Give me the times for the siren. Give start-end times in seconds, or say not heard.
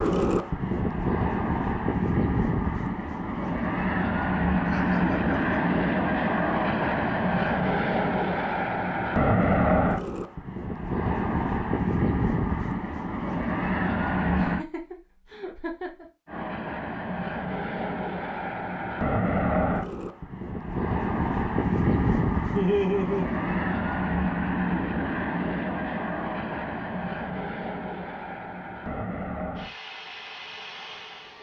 not heard.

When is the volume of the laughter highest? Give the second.
23 s.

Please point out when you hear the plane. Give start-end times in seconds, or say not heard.
0.0-14.7, 16.2-31.3.